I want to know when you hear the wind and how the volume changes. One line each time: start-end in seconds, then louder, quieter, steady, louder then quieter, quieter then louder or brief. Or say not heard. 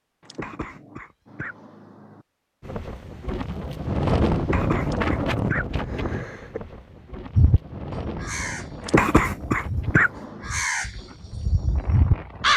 2.6-12.5 quieter.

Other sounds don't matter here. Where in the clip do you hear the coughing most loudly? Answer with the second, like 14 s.
9 s.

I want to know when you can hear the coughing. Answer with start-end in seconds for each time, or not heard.
0.3-1.6, 4.5-6.6, 8.9-10.1.